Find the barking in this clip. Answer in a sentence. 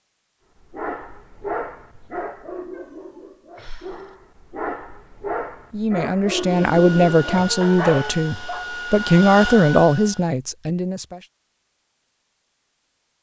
You can hear the barking from 0.6 to 8.7 s.